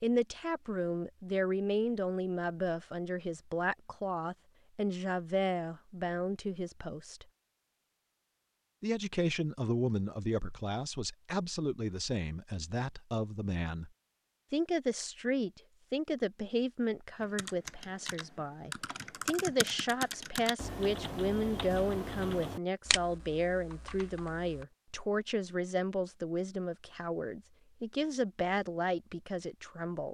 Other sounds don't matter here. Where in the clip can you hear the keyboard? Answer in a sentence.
The keyboard can be heard from 17.2 to 24.6 s.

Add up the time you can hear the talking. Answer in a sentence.
The talking can be heard for 28 seconds in total.